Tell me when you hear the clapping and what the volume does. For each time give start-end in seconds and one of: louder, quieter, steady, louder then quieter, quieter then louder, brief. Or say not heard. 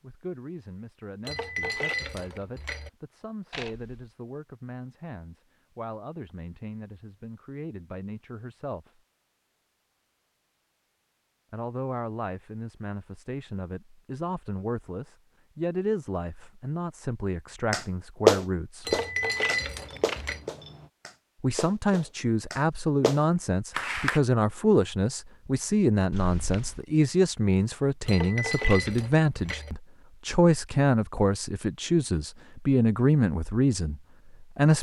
17.7-24.2 quieter then louder.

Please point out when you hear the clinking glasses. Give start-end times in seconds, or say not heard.
1.2-2.9, 18.9-20.4, 28.1-29.7.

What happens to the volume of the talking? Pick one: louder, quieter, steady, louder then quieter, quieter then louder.
louder.